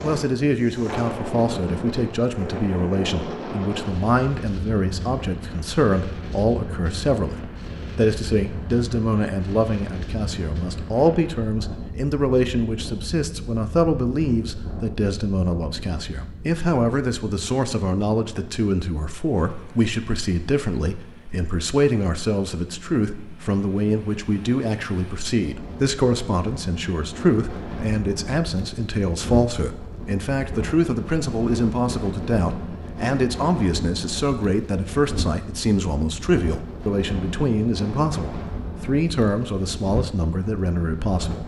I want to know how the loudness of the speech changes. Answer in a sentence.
The loudness of the speech stays about the same.